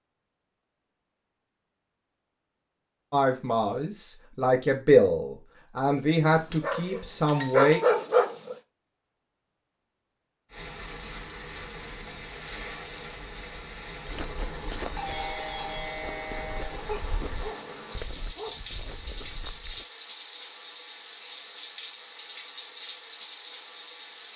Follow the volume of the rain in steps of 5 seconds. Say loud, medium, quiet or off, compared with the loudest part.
off, off, loud, loud, loud.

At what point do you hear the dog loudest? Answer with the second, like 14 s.
8 s.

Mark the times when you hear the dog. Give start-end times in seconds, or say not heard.
6.3-8.6, 16.9-18.9.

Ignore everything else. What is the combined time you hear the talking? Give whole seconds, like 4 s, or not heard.
5 s.